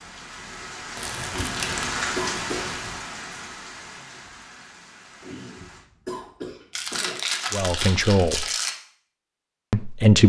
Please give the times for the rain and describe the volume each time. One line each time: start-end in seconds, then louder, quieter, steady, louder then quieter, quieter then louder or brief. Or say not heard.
0.0-5.8 louder then quieter.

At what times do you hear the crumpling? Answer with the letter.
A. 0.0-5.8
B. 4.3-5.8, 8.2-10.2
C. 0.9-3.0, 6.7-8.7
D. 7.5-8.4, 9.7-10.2
C.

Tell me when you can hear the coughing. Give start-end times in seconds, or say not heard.
1.3-2.8, 5.2-7.2.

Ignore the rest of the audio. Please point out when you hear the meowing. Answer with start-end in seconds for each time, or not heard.
not heard.